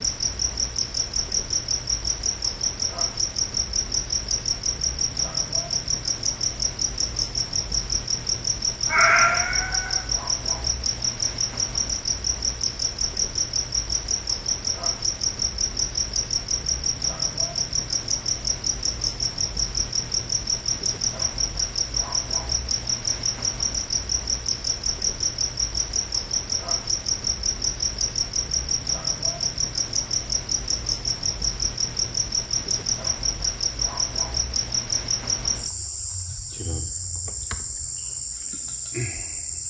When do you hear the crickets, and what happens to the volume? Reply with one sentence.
The crickets can be heard from 0.0 to 39.6 s, at a steady volume.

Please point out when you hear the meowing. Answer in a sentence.
The meowing can be heard from 8.8 to 10.1 s.